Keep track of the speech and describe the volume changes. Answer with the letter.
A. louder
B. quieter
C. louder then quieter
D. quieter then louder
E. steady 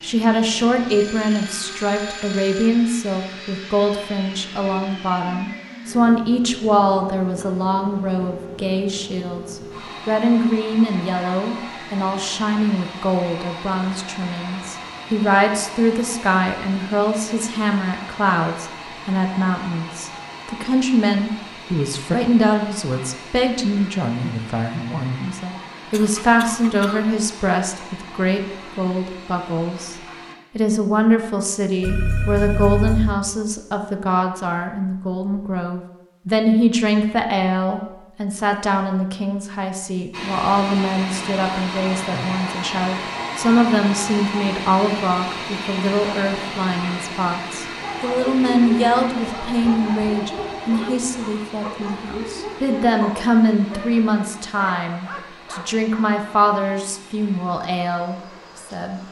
E.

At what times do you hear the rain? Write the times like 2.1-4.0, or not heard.
not heard.